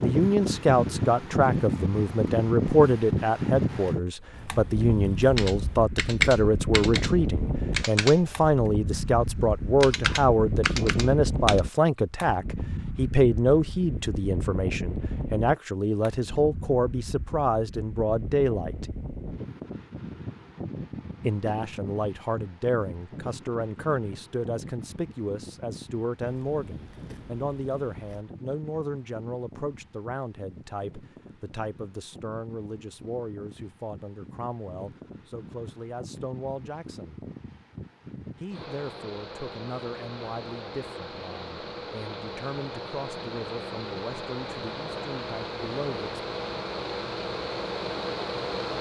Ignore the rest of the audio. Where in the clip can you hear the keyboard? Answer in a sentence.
You can hear the keyboard from 5.3 to 11.6 s.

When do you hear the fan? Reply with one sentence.
You can hear the fan from 0.0 to 48.7 s.